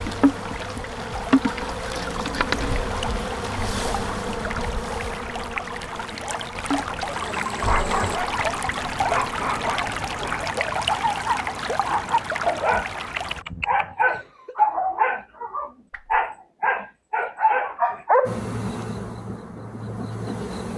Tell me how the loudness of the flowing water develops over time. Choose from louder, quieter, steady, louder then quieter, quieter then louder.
louder.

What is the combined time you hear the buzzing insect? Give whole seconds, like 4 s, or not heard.
11 s.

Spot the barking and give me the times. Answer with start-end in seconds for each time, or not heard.
7.6-18.4.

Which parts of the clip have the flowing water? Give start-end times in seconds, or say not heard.
0.0-13.4.